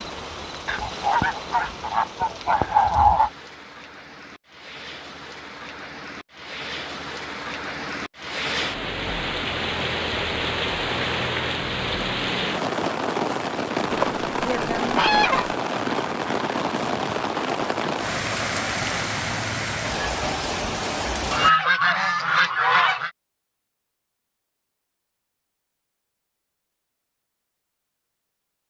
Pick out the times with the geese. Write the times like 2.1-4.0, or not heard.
0.7-3.3, 13.9-15.6, 21.3-23.1.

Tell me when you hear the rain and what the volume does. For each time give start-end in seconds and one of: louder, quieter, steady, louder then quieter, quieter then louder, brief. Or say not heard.
0.0-21.5 louder.